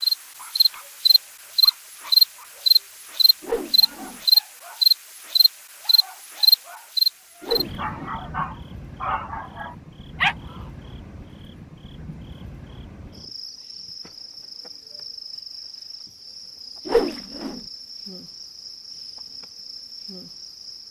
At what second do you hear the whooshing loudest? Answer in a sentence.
The loudest moment of the whooshing is at 17 seconds.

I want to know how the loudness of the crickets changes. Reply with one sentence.
The loudness of the crickets goes down.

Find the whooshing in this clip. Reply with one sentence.
You can hear the whooshing from 3.4 to 4.2 s, from 7.4 to 8.2 s and from 16.9 to 17.6 s.